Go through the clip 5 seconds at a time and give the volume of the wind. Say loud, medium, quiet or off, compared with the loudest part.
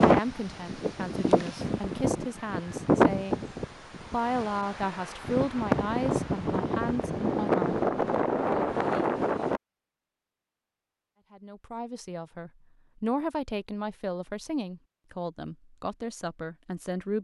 loud, loud, off, off.